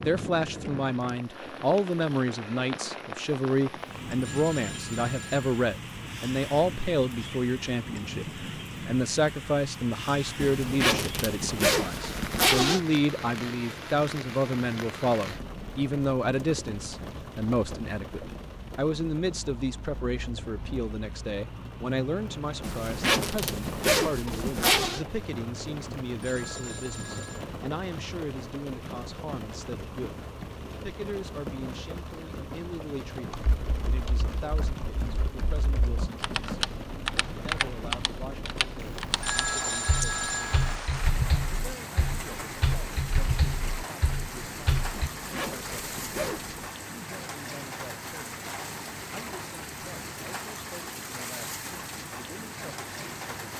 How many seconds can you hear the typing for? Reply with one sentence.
You can hear the typing for 12 seconds altogether.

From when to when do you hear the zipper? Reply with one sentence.
The zipper can be heard from 10.4 to 12.8 s, from 22.6 to 25.0 s and from 44.9 to 46.7 s.